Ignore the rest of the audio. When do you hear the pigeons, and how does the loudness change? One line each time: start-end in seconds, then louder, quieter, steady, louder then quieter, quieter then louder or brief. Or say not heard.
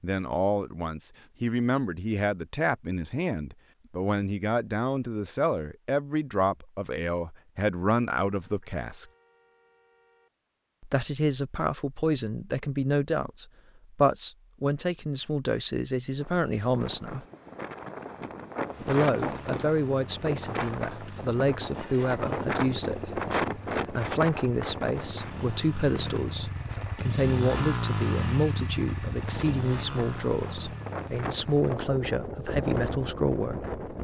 not heard.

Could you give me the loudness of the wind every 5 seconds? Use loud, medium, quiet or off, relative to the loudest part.
off, off, off, loud, loud, medium, loud.